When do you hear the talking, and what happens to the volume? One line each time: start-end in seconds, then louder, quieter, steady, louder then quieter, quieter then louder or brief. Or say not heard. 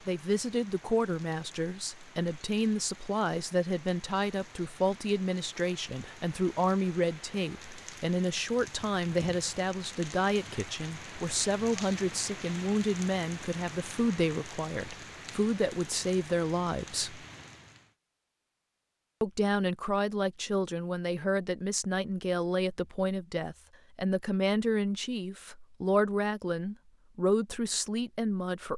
0.1-17.2 steady
19.2-28.7 steady.